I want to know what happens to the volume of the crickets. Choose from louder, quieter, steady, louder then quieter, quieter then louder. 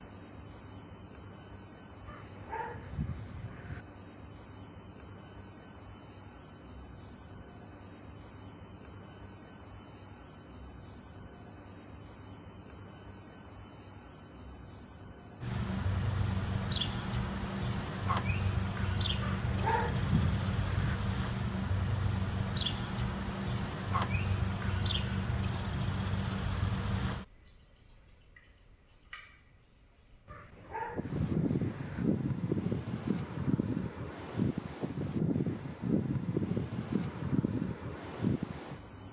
steady.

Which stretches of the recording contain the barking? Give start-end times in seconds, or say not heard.
2.0-3.9, 19.2-20.9, 30.2-32.0.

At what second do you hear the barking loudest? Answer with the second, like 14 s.
20 s.